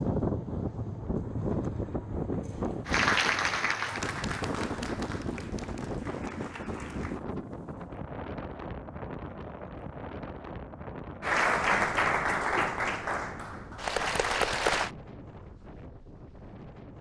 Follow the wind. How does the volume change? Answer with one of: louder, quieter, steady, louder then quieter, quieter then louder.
quieter.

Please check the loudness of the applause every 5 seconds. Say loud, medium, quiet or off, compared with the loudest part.
loud, quiet, loud, off.